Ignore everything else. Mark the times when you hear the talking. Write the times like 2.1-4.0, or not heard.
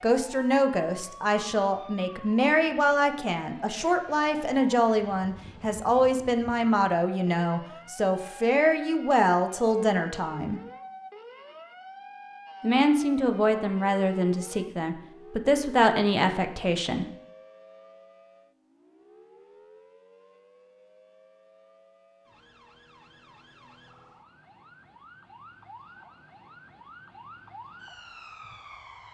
0.0-10.6, 12.6-17.1.